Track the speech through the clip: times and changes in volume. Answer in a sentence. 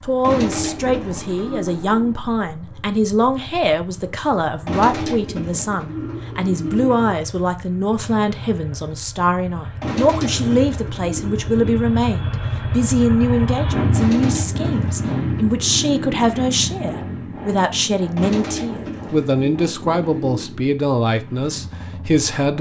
The speech can be heard from 0.0 to 22.5 s, at a steady volume.